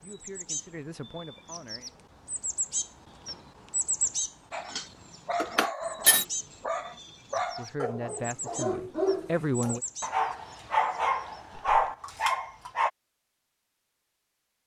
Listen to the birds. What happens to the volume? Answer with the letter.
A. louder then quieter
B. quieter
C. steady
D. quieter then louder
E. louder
A.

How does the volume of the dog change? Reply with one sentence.
The volume of the dog goes up.